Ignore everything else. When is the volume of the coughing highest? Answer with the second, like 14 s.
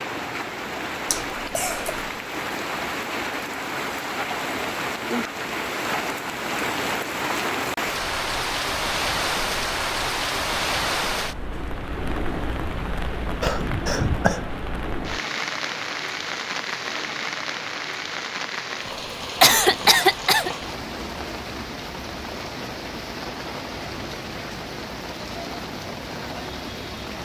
20 s.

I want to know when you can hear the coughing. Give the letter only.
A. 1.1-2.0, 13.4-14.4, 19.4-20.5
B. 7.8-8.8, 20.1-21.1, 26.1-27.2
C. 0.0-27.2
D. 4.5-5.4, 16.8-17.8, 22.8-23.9
A.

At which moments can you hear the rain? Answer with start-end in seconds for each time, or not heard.
0.0-27.2.